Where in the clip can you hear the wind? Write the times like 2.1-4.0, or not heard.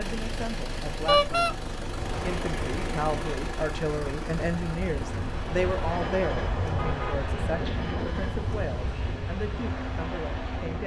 1.9-10.8.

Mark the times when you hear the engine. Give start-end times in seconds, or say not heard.
0.0-10.8.